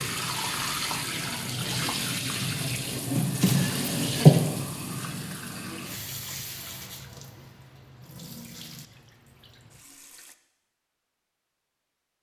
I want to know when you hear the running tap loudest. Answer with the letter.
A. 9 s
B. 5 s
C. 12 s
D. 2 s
D.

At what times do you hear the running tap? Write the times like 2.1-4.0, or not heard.
0.0-10.3.